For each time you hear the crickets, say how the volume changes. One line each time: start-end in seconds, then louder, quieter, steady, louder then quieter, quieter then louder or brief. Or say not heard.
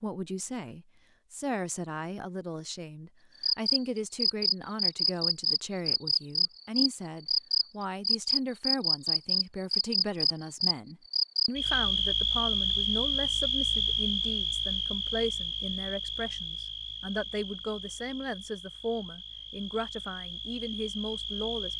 3.4-21.7 quieter.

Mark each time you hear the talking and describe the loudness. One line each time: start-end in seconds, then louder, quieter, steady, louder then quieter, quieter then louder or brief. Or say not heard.
0.0-21.7 steady.